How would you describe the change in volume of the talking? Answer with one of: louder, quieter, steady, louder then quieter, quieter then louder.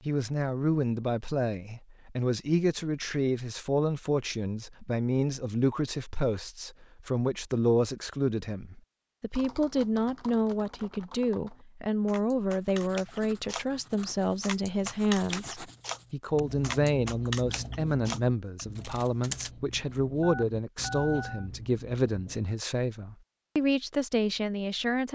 steady.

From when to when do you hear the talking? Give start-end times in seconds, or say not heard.
0.1-25.1.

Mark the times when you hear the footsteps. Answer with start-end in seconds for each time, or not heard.
not heard.